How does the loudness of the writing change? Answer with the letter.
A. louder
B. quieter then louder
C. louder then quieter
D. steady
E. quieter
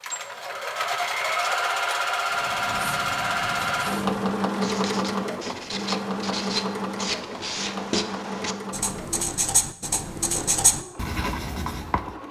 A.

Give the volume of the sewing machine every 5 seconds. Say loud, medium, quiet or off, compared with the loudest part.
loud, medium, quiet.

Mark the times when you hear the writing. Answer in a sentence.
The writing can be heard from 2.3 to 12.2 s.